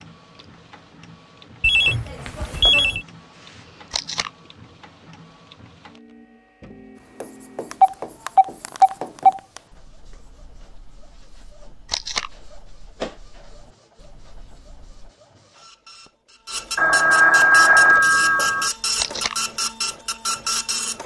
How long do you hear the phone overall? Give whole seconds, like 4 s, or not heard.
5 s.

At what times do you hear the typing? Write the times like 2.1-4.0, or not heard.
not heard.